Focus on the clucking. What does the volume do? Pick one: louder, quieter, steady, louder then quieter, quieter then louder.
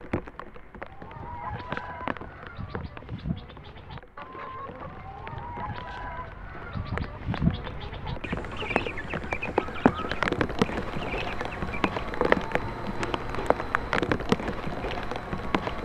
louder then quieter.